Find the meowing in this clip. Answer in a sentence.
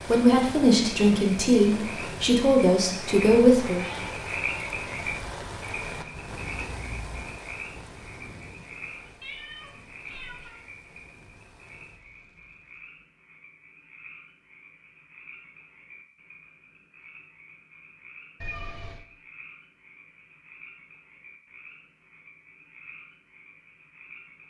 You can hear the meowing from 2.9 to 4.2 s, from 9.2 to 10.7 s and from 18.4 to 19.1 s.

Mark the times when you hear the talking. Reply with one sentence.
You can hear the talking from 0.1 to 3.9 s.